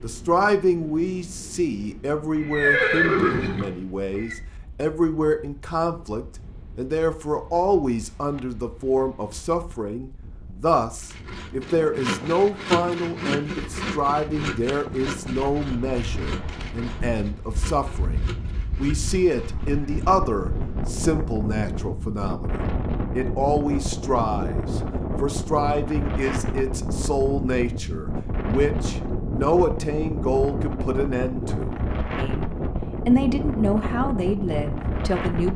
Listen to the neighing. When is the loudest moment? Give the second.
3 s.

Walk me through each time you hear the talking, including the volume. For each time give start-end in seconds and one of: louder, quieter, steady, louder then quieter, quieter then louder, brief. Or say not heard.
0.0-35.5 steady.